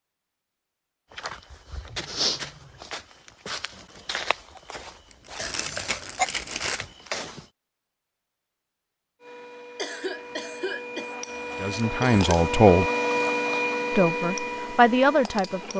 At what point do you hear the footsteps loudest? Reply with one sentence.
The volume of the footsteps peaks at 2 seconds.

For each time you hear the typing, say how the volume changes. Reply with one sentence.
You can't hear the typing here.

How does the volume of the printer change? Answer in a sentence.
The loudness of the printer goes up, then down.